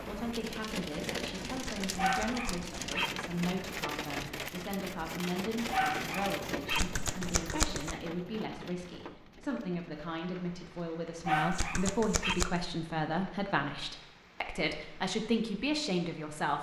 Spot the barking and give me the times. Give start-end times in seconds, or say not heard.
1.9-3.1, 5.7-6.8, 11.2-12.3.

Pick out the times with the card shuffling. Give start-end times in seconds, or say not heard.
1.6-2.8, 6.7-8.0, 11.5-12.6.